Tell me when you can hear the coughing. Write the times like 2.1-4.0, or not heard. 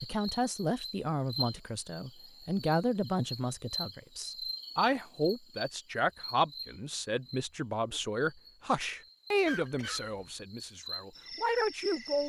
9.4-10.3.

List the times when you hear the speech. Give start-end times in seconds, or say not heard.
0.0-12.2.